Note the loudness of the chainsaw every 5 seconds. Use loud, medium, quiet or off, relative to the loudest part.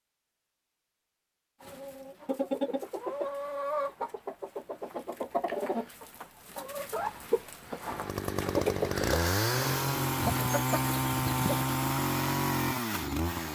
off, loud, loud.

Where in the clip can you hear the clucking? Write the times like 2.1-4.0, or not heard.
1.6-11.7.